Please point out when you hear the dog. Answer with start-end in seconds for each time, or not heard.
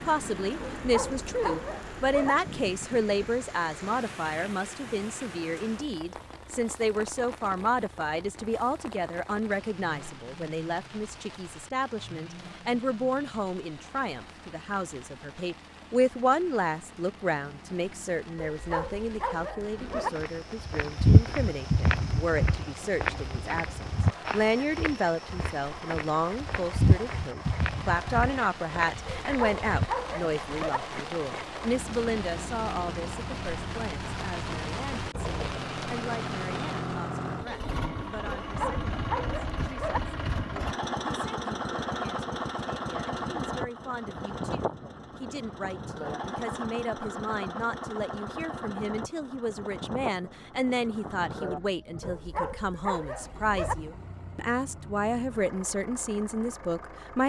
0.8-2.4, 18.4-20.1, 29.1-30.8, 38.4-40.0, 52.0-53.8.